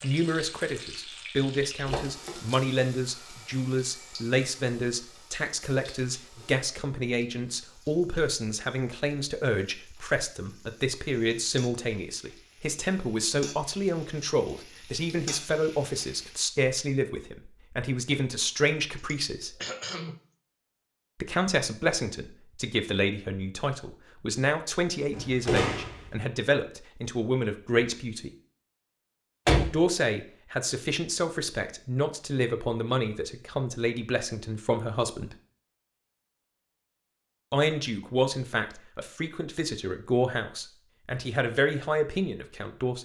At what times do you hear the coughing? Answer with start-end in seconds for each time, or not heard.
18.9-20.2.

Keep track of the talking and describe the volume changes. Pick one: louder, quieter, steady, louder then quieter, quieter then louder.
steady.